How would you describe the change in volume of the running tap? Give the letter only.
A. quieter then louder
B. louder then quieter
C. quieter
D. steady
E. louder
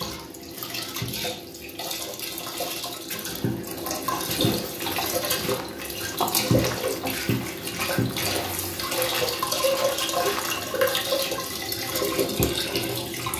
E.